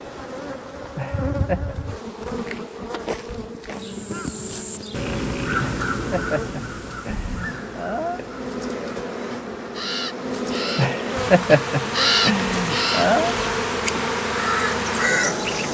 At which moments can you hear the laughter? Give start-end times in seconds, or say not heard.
0.9-1.8, 5.5-8.2, 10.8-13.3.